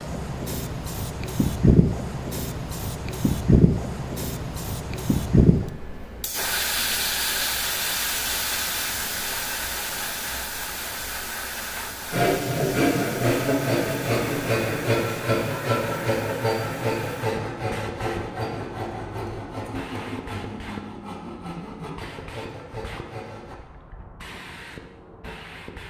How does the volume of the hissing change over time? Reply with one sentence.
The loudness of the hissing goes down.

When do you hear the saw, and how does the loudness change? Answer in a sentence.
The saw can be heard from 12.1 to 23.6 s, getting quieter.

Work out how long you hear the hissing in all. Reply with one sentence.
The hissing can be heard for 26 seconds in total.